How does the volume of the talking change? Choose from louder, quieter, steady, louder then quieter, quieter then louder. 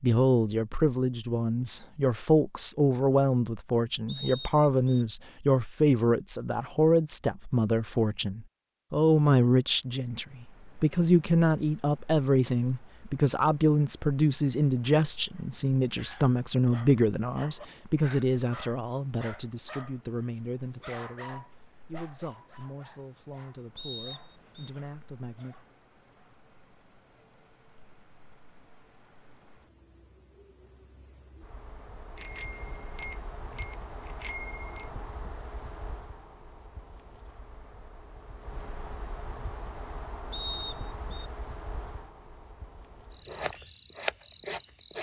quieter.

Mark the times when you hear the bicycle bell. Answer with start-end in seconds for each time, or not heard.
32.1-34.9.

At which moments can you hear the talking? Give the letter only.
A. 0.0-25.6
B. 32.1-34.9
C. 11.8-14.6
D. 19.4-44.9
A.